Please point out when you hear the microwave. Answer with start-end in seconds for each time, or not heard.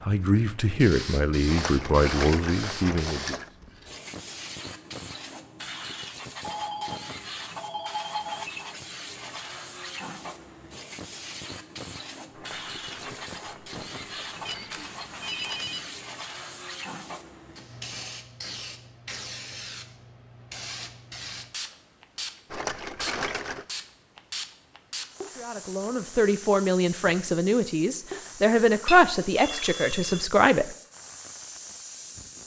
not heard.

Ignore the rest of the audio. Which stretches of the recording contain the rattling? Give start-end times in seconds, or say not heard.
1.4-3.5, 12.3-14.7, 22.5-23.6.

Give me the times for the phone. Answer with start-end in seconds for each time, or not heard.
6.4-8.4, 14.4-15.9, 28.9-30.2.